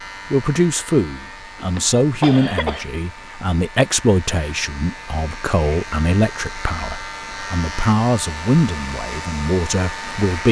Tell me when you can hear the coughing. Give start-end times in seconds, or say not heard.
1.6-2.9.